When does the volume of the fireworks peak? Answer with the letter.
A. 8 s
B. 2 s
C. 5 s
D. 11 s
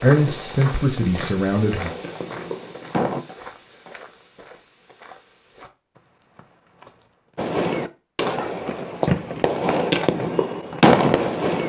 D.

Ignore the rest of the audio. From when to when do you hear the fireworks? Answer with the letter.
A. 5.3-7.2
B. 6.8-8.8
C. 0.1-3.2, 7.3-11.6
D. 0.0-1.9
C.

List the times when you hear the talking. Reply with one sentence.
You can hear the talking from 0.0 to 1.9 s.